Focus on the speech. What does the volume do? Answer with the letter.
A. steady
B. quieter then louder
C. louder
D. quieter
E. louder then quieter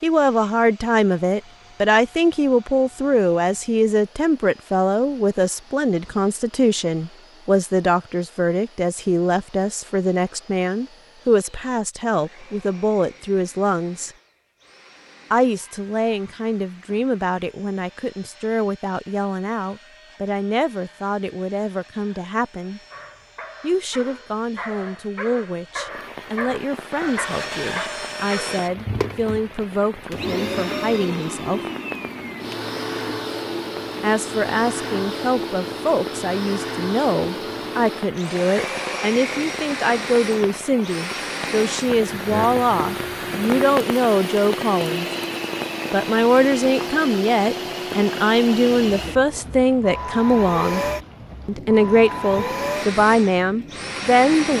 B.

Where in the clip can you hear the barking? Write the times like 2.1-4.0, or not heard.
22.9-28.6.